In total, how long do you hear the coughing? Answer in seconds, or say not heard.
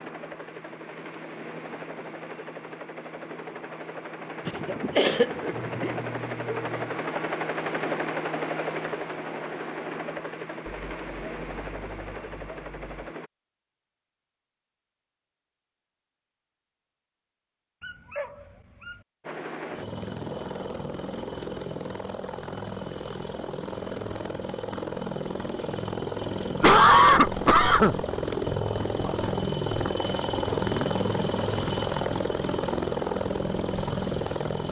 3 s.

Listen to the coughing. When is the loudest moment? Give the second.
27 s.